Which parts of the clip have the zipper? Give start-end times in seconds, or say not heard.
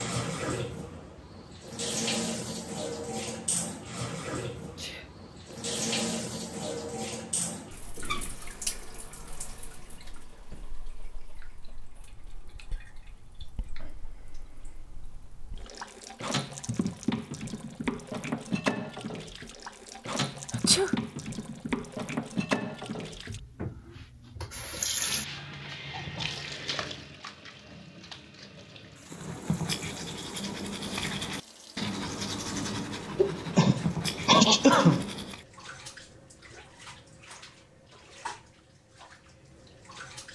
not heard.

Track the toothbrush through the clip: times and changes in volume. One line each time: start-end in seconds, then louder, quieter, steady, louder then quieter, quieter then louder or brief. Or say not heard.
29.1-35.5 steady.